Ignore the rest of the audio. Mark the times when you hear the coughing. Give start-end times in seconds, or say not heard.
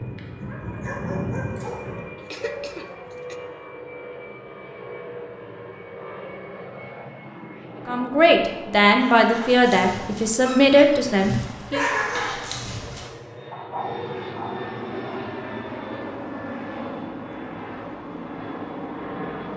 2.1-3.4.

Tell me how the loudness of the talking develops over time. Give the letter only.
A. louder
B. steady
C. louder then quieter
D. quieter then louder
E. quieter
B.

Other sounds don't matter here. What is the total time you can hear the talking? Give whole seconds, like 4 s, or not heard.
4 s.